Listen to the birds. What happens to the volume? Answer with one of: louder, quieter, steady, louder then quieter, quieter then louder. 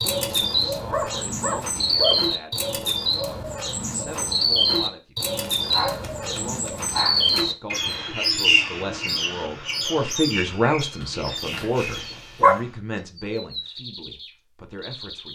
quieter.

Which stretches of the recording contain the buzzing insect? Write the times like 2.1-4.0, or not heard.
not heard.